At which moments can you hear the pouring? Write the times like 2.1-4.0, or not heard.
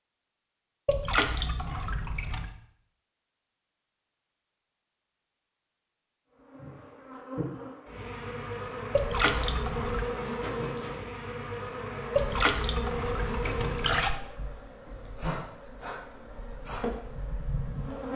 0.8-2.5, 8.9-10.1, 12.2-14.2.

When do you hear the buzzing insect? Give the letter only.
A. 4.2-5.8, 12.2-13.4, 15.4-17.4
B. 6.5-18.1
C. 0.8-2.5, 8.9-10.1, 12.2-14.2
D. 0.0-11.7
B.